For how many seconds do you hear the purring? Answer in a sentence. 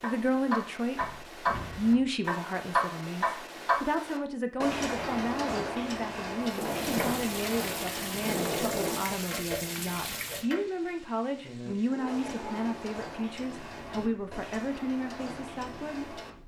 You can't hear the purring here.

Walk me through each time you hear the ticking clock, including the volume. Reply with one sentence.
The ticking clock can be heard from 0.0 to 10.7 s, getting quieter; and from 11.4 to 16.3 s, at a steady volume.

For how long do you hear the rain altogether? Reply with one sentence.
You can hear the rain for 10 seconds altogether.